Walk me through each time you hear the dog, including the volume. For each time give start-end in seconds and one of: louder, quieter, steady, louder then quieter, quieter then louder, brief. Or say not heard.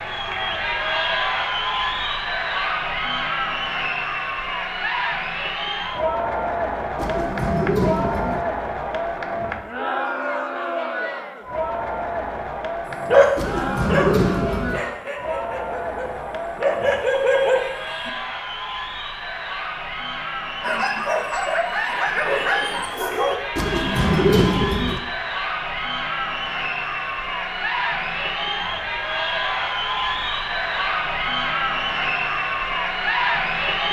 13.1-18.1 quieter then louder
20.6-23.4 brief.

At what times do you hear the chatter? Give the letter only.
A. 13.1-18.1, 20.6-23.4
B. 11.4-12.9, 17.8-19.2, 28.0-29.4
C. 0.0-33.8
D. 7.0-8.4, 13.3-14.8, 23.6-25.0
C.